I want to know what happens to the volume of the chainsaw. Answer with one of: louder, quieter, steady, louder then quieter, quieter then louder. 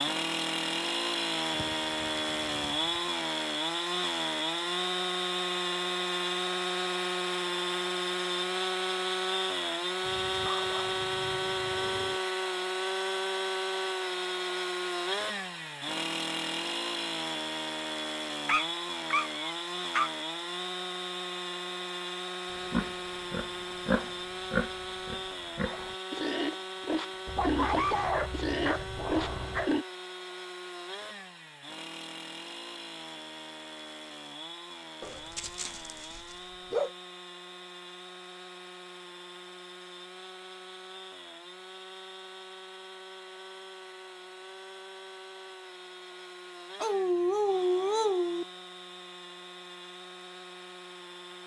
quieter.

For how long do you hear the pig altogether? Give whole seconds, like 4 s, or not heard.
7 s.